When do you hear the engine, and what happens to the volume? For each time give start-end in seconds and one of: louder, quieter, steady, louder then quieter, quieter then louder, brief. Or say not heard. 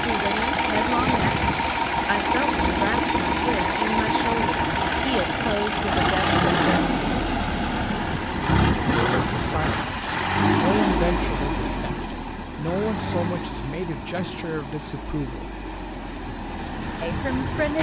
0.0-17.7 quieter.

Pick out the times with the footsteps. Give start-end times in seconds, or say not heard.
not heard.